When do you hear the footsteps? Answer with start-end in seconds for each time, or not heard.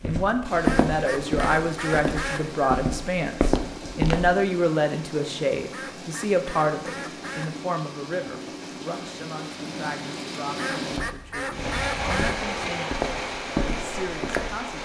0.0-4.4, 10.9-14.7.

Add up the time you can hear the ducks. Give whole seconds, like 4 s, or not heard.
6 s.